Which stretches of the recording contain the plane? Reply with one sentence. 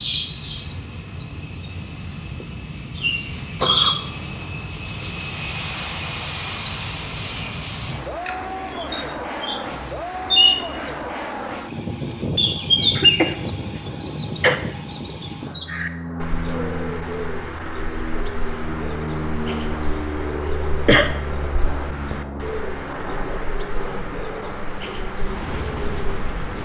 The plane can be heard from 0.0 to 26.5 s.